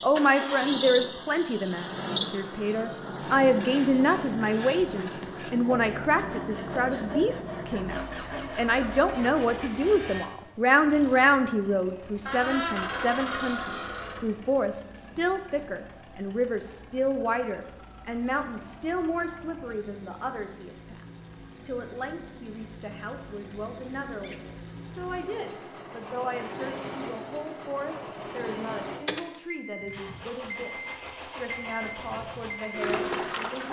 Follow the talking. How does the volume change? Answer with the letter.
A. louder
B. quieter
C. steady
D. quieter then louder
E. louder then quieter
B.